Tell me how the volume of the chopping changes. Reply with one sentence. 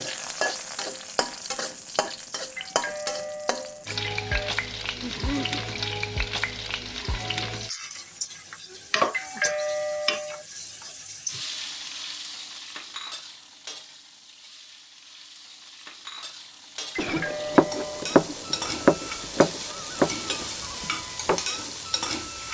The loudness of the chopping goes down.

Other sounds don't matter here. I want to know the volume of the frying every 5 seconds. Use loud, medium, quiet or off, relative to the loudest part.
loud, loud, medium, medium, loud.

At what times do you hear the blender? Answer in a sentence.
The blender can't be heard in this clip.